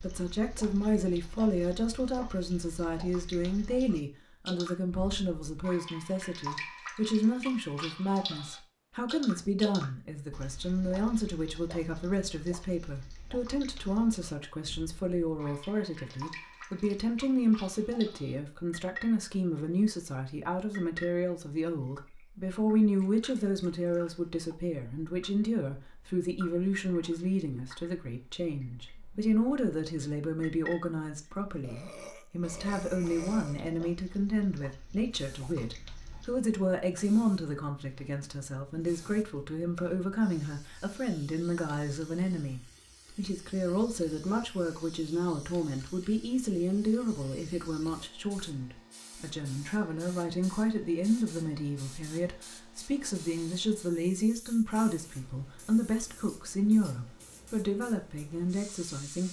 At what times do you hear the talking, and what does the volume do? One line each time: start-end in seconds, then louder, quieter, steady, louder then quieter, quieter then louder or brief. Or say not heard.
0.0-59.2 steady.